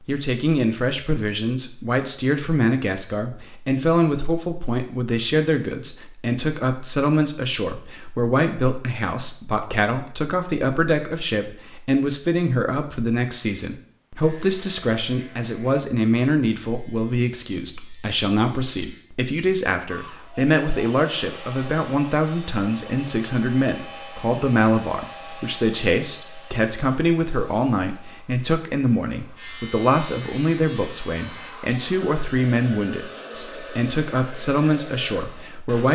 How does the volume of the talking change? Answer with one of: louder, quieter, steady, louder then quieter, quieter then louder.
steady.